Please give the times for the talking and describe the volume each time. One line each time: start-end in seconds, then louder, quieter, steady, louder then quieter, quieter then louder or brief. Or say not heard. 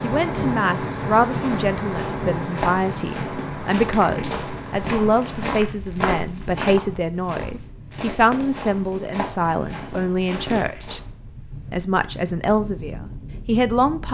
0.0-11.0 steady
11.7-14.0 brief.